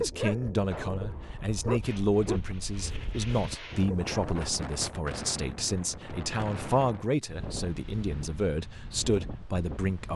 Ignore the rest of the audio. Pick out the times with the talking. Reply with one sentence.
The talking can be heard from 0.0 to 10.1 s.